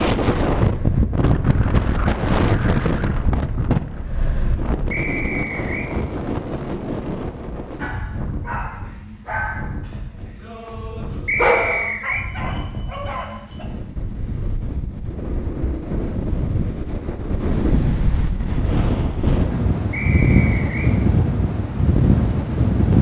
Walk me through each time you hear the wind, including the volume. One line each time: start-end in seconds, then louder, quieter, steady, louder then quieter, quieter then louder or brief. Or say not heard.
0.0-22.9 quieter then louder.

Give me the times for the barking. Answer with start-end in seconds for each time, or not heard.
7.8-13.7.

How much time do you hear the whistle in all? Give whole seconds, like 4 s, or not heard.
3 s.